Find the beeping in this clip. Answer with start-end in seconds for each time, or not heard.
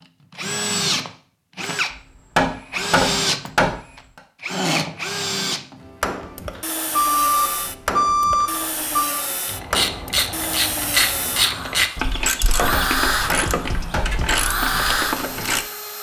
7.0-9.2.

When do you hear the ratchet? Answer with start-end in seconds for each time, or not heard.
9.4-15.7.